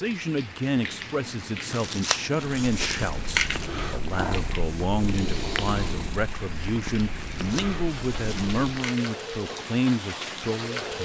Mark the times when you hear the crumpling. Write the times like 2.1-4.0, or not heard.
1.7-3.7, 7.2-9.2.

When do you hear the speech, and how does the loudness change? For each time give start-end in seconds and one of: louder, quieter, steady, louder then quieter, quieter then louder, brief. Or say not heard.
0.0-10.9 steady.